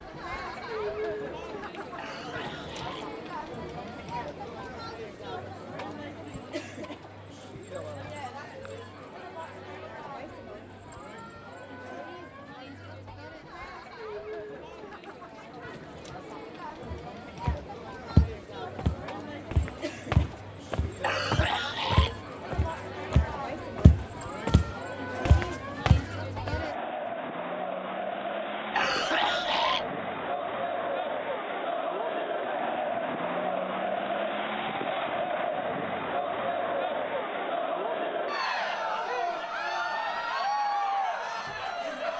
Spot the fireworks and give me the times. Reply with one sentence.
The fireworks can't be heard in this clip.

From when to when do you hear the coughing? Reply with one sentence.
You can hear the coughing from 1.9 to 3.1 s, from 21.0 to 22.2 s and from 28.7 to 29.9 s.